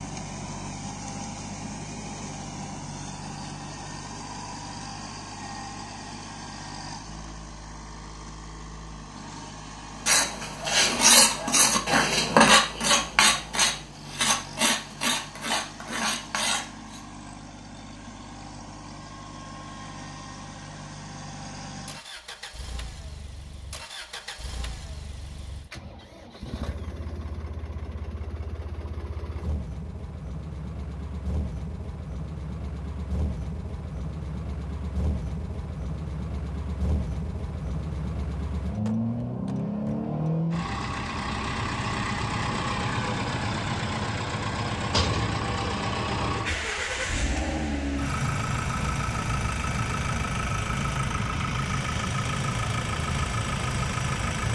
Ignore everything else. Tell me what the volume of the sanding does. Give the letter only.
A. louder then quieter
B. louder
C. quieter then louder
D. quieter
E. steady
D.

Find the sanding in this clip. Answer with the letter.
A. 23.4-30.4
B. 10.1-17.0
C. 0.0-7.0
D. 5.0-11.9
B.